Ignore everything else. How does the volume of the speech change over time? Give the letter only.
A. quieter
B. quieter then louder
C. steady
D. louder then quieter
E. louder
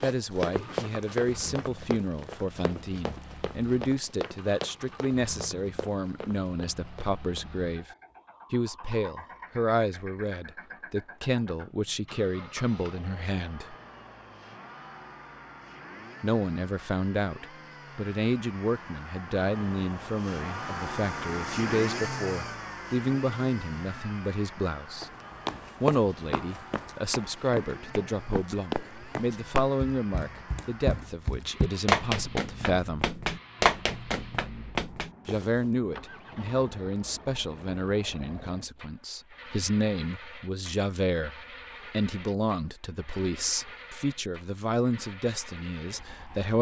C.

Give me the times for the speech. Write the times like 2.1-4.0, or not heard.
0.0-7.9, 8.5-13.8, 16.2-25.1, 25.8-33.0, 35.2-46.5.